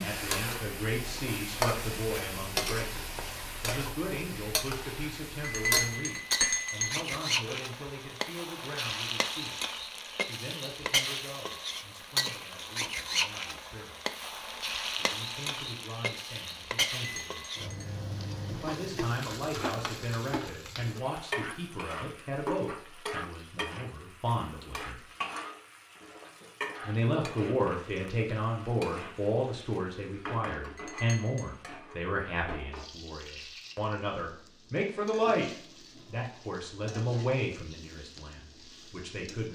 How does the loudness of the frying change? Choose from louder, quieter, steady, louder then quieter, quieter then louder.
quieter.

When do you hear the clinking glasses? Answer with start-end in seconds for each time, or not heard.
5.4-6.9, 17.0-17.9, 30.8-31.4.